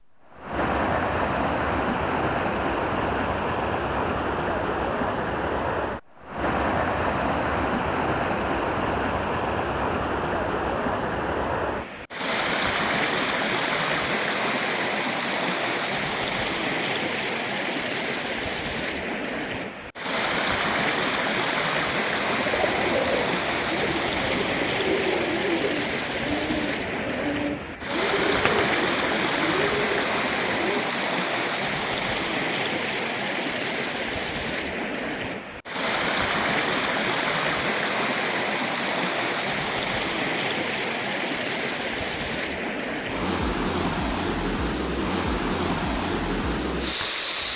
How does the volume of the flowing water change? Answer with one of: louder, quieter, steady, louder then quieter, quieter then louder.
steady.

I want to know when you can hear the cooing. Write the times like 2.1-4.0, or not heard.
22.2-30.9.